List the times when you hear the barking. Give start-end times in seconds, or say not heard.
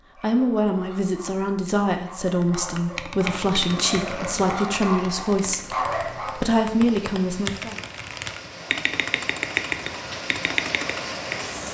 0.0-6.5.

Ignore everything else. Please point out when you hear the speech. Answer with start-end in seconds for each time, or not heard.
0.2-7.8.